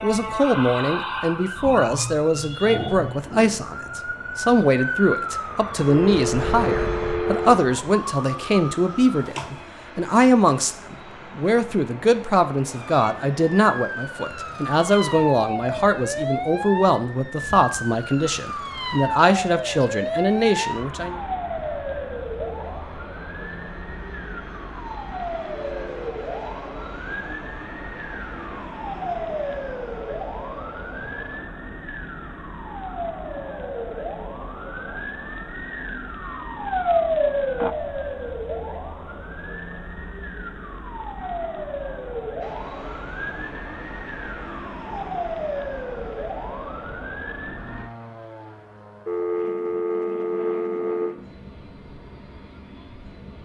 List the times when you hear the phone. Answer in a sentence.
You can hear the phone from 5.8 to 7.5 s, from 25.5 to 26.1 s and from 49.0 to 51.1 s.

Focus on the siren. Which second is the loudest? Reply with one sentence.
The volume of the siren peaks at 37 seconds.